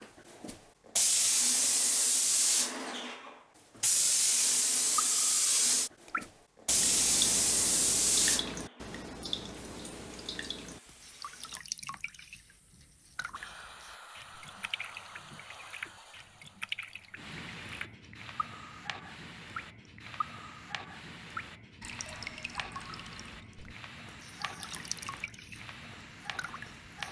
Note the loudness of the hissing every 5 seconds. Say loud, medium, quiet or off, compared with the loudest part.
loud, loud, quiet, quiet, quiet, quiet.